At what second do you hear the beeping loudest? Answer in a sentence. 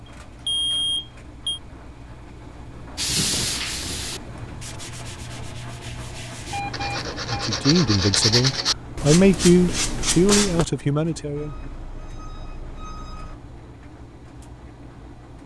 The volume of the beeping peaks at 1 second.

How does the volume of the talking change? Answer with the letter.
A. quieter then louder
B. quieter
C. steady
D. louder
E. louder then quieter
E.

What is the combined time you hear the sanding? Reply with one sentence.
You can hear the sanding for 8 seconds altogether.